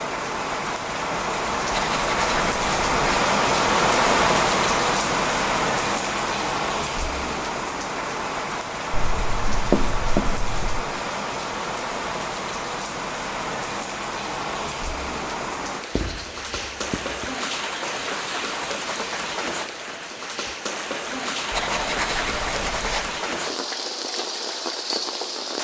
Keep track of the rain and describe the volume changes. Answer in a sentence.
The volume of the rain goes down.